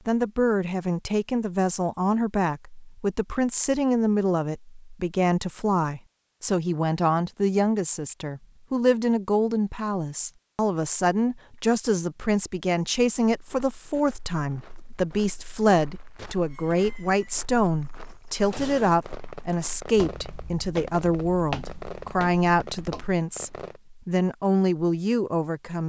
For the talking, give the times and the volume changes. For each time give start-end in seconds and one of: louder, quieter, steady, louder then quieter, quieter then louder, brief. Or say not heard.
0.1-25.8 steady.